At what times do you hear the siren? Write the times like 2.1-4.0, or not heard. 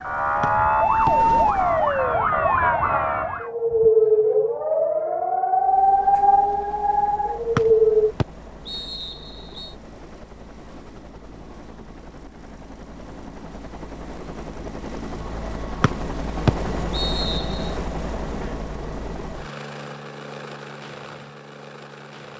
0.0-8.2.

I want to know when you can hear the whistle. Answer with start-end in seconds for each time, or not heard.
0.4-1.1, 7.5-9.7, 15.8-17.7.